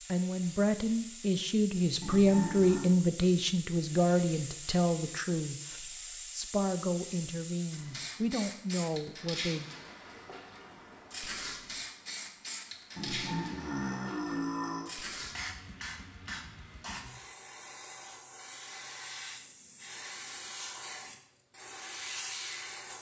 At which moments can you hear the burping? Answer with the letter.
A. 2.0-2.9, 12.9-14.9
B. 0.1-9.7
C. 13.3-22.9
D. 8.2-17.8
A.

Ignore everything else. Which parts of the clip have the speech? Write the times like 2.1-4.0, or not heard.
0.1-9.7.